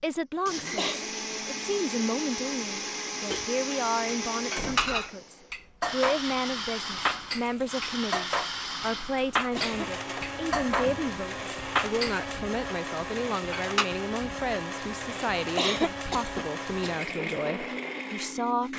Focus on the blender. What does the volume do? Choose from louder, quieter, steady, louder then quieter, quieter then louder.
steady.